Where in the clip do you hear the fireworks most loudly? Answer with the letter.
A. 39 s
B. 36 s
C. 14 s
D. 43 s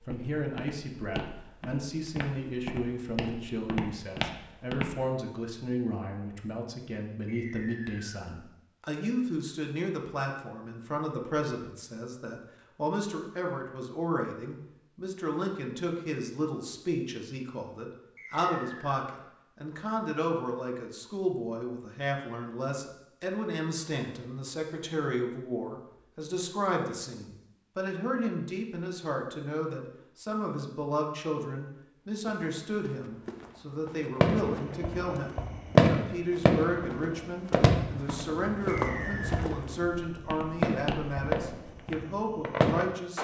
B.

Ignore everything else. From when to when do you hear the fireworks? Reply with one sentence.
The fireworks can be heard from 34.2 to 43.2 s.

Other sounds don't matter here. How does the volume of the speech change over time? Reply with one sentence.
The loudness of the speech stays about the same.